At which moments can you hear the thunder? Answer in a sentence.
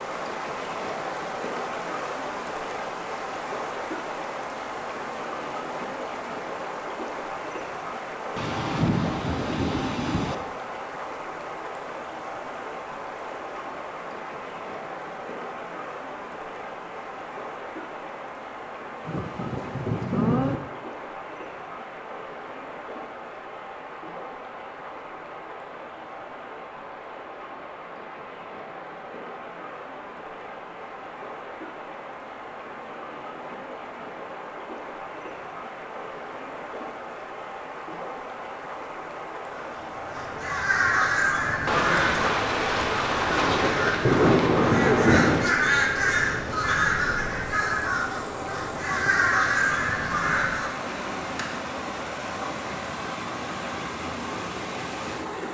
The thunder can be heard from 8.3 to 10.3 s, from 19.1 to 20.6 s and from 41.6 to 45.5 s.